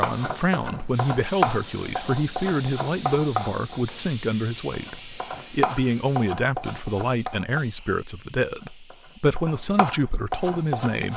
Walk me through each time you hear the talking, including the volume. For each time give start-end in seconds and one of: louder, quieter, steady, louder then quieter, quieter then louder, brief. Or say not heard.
0.0-11.1 steady.